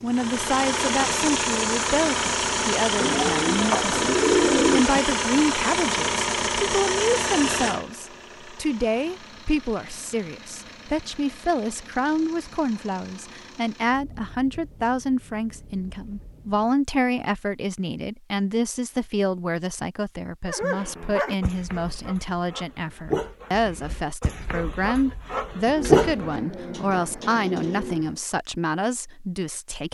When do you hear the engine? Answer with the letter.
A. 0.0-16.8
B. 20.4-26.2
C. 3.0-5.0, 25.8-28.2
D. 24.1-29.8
A.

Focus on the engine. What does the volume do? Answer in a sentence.
The loudness of the engine goes down.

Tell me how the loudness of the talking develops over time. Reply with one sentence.
The volume of the talking stays about the same.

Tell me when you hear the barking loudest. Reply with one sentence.
The volume of the barking peaks at 26 seconds.